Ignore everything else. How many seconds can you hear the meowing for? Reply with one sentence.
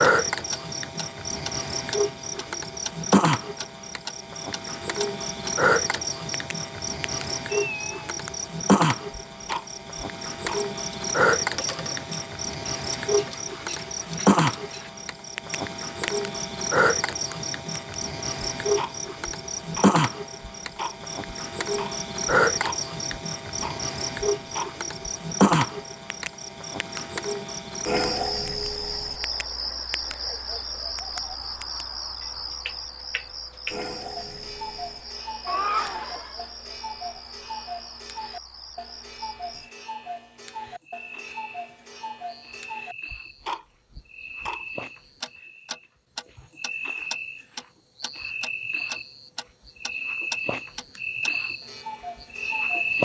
The meowing can be heard for 2 seconds in total.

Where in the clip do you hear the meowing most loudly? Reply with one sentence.
The loudest moment of the meowing is at 36 seconds.